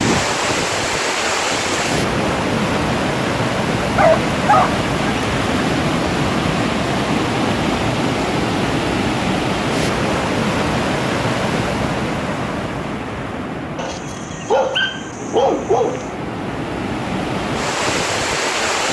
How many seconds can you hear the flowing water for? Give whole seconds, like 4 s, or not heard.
19 s.